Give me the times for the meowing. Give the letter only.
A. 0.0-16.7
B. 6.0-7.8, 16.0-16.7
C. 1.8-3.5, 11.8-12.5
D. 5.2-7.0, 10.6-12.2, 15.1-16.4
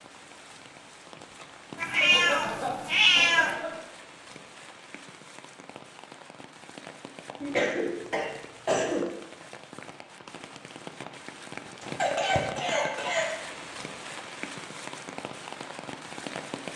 C.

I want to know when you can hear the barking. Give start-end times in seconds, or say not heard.
not heard.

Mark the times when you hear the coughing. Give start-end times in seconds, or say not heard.
2.0-3.9, 7.4-9.0, 11.9-13.2.